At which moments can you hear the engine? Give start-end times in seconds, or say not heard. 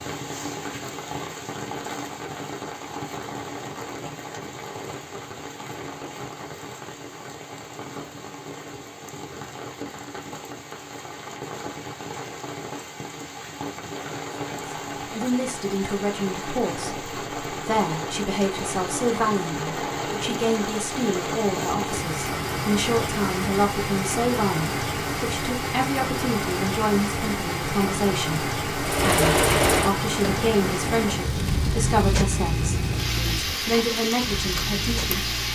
28.8-35.5.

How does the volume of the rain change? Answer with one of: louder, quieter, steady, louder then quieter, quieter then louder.
louder.